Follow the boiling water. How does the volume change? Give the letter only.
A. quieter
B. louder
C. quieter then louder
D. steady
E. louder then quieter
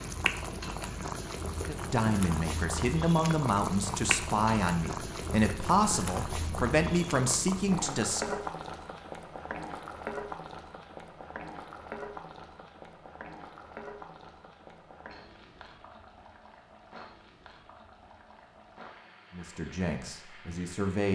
A.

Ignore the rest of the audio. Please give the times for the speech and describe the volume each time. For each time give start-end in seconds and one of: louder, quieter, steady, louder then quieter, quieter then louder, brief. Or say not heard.
1.6-8.3 steady
19.3-21.1 brief.